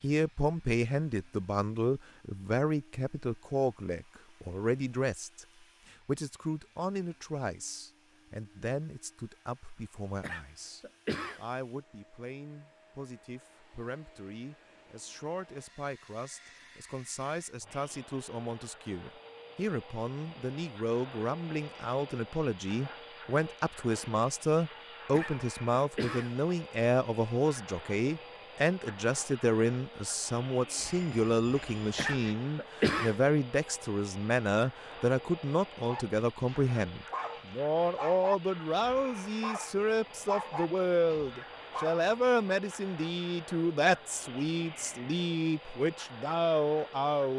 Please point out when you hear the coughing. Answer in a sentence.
You can hear the coughing from 10.2 to 11.4 s, from 25.1 to 26.4 s and from 31.9 to 33.1 s.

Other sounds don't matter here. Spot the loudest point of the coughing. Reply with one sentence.
The loudest moment of the coughing is at 33 seconds.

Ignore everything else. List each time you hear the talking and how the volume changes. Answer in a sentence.
You can hear the talking from 0.0 to 47.3 s, getting quieter then louder.